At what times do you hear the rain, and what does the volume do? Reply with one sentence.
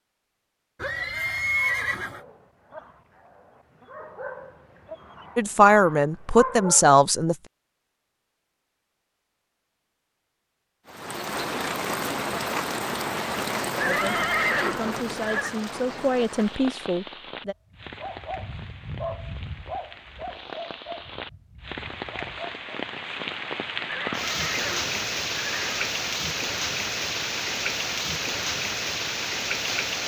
The rain can be heard from 10.8 to 30.0 s, getting quieter then louder.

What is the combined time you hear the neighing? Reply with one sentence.
You can hear the neighing for 5 seconds altogether.